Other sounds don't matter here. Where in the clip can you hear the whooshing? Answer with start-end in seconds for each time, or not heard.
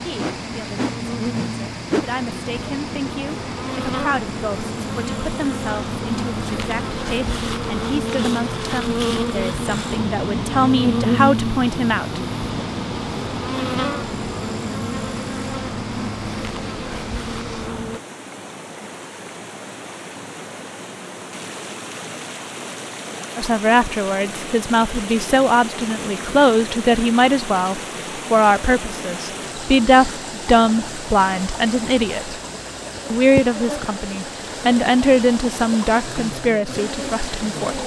0.1-2.0.